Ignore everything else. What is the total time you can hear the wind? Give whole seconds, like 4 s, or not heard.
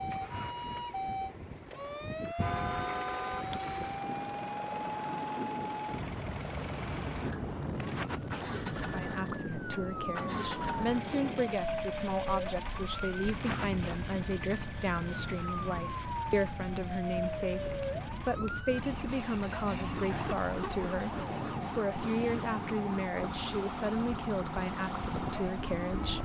26 s.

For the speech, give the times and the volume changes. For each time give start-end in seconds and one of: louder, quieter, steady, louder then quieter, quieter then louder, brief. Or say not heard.
8.9-26.1 steady.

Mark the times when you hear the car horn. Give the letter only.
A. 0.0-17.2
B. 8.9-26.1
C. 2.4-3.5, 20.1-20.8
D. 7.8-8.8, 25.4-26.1
C.